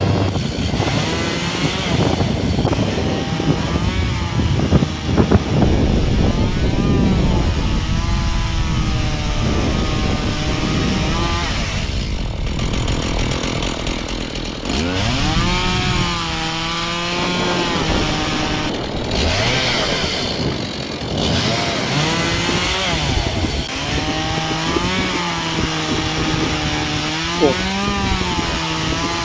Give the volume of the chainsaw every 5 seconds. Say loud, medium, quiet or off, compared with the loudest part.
medium, medium, loud, loud, loud, loud.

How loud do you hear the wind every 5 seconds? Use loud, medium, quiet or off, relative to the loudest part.
loud, loud, medium, medium, medium, medium.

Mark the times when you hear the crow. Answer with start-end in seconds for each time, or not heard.
not heard.